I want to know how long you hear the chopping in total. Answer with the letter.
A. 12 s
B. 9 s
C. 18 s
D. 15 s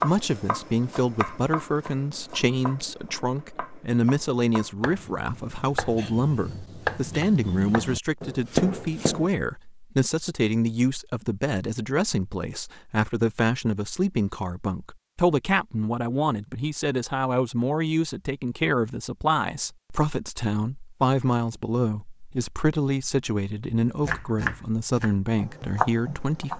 A.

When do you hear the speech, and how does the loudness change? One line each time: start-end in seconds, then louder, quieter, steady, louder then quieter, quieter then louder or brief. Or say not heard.
0.0-26.5 steady.